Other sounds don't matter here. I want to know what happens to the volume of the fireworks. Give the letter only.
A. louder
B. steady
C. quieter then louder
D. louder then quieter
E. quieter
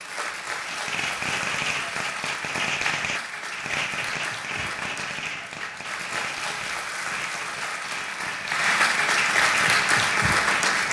E.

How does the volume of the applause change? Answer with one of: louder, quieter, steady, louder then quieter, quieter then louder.
louder.